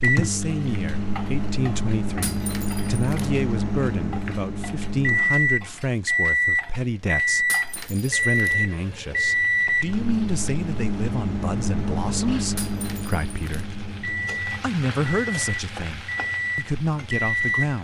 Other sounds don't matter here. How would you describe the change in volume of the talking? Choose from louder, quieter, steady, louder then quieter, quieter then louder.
steady.